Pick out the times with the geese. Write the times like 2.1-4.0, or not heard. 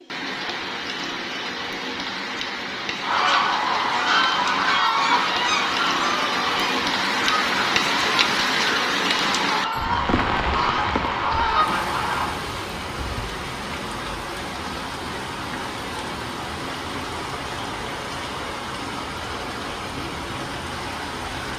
3.0-12.3.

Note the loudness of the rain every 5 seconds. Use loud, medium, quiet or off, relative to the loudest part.
medium, loud, medium, medium, medium.